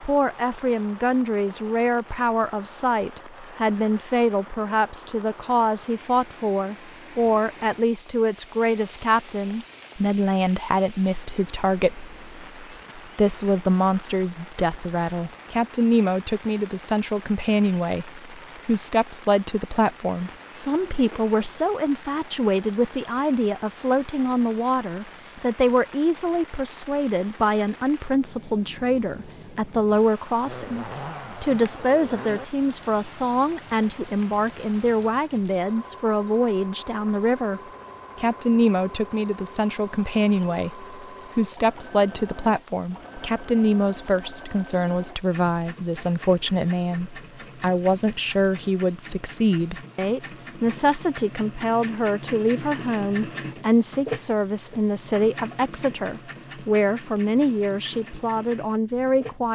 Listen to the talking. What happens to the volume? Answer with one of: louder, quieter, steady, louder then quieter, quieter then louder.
steady.